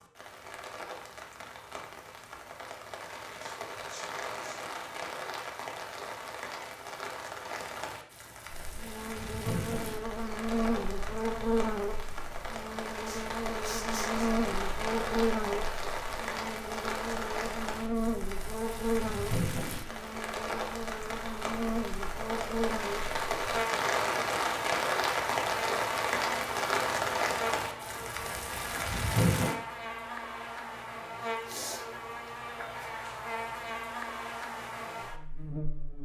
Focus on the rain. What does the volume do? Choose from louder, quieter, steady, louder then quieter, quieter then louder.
louder.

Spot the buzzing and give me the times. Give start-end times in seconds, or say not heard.
8.5-36.0.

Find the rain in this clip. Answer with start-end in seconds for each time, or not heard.
0.0-29.6.